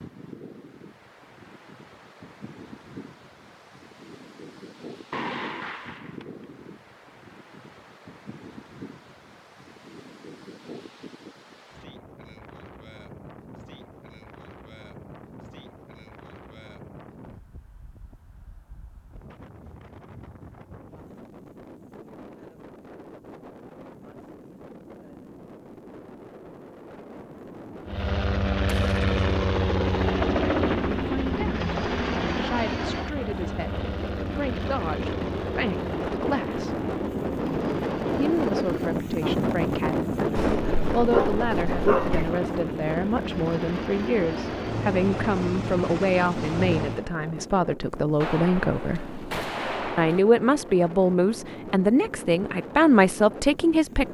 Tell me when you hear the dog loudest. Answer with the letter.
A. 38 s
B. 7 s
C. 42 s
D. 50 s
C.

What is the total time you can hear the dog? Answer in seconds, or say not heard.
2 s.